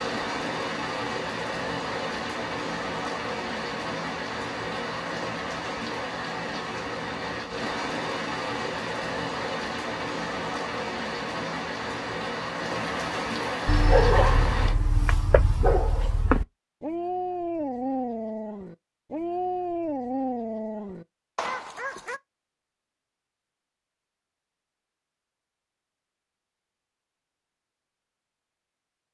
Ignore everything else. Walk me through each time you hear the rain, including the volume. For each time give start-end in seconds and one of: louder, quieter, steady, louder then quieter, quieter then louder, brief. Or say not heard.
0.0-14.8 steady.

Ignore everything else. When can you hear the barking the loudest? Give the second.
14 s.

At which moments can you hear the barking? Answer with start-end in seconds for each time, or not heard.
13.7-22.2.